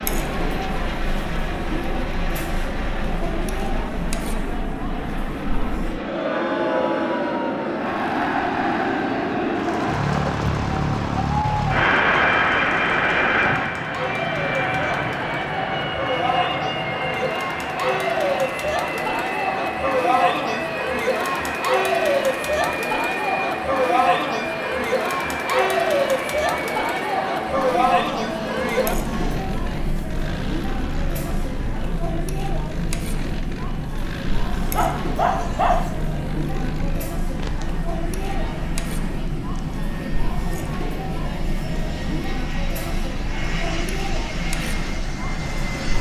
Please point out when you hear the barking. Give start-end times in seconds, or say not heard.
34.7-35.9.